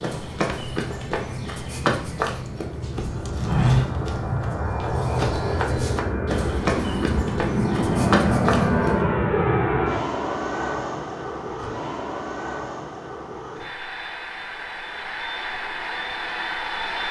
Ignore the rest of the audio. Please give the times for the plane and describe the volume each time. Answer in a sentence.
You can hear the plane from 0.0 to 17.0 s, getting louder then quieter.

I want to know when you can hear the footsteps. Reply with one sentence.
The footsteps can be heard from 0.0 to 8.9 s.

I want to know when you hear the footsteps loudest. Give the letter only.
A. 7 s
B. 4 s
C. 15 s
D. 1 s
B.